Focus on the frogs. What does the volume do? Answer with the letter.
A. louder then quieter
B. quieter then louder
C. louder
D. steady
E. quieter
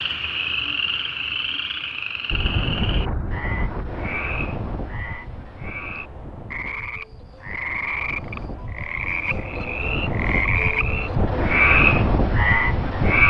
B.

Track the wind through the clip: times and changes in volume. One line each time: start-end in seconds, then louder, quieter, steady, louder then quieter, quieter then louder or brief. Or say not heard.
2.3-13.2 quieter then louder.